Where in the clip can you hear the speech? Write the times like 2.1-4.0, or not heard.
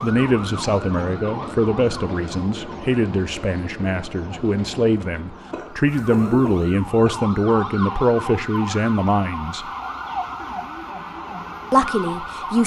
0.0-9.7, 11.7-12.6.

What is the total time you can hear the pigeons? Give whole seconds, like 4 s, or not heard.
not heard.